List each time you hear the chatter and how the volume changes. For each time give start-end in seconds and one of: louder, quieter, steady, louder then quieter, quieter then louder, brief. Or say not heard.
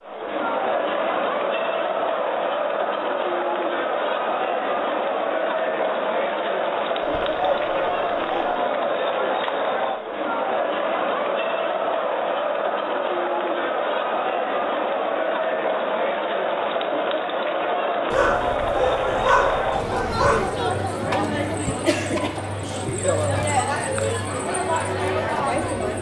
0.0-25.9 steady.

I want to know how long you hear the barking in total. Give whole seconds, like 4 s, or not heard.
4 s.